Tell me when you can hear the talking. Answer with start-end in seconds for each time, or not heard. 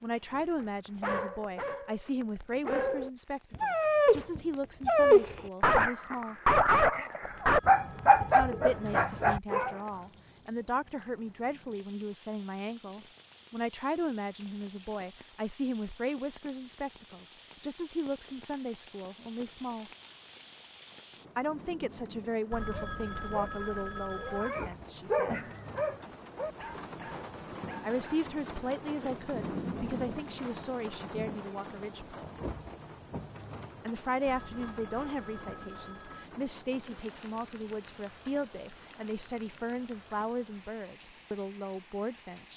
0.0-6.3, 8.2-19.9, 21.4-25.4, 27.8-32.4, 33.9-42.5.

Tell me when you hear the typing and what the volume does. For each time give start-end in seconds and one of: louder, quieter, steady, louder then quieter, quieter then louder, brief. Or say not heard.
not heard.